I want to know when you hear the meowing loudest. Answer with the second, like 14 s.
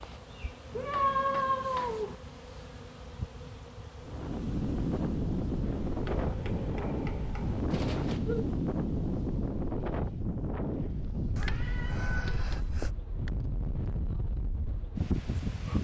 1 s.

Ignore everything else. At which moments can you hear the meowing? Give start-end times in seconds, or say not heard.
0.7-2.1, 7.7-8.5, 11.3-12.9.